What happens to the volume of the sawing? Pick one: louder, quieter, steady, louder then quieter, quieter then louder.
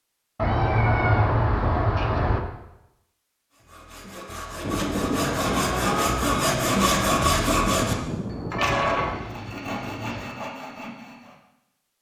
louder then quieter.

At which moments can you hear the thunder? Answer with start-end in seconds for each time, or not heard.
4.6-9.3.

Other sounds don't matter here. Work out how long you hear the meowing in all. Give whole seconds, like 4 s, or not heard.
5 s.